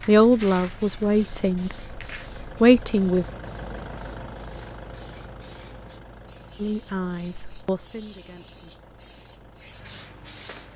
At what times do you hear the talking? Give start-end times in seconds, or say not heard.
0.1-3.2, 6.5-8.8.